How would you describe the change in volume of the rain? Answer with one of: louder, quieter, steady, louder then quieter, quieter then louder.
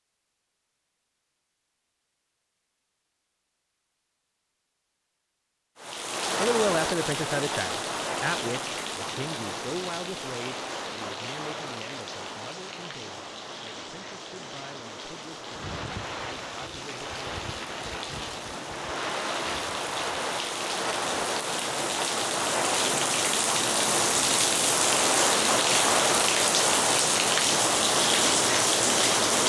quieter then louder.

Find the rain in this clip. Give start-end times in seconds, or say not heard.
5.8-29.4.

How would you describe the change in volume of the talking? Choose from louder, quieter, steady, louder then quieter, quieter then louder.
quieter.